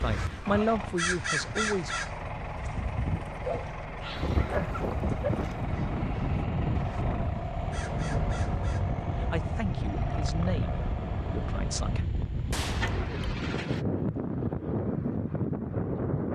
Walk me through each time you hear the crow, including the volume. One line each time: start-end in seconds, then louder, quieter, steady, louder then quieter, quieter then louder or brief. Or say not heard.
0.0-8.8 quieter.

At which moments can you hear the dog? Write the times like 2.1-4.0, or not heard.
3.3-5.3.